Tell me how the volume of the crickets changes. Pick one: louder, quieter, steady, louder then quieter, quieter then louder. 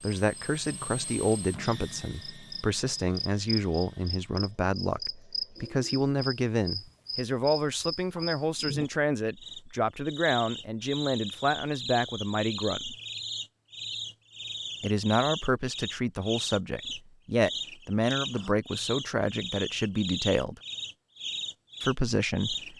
steady.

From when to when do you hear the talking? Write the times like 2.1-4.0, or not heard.
0.0-12.9, 14.8-20.6, 21.8-22.7.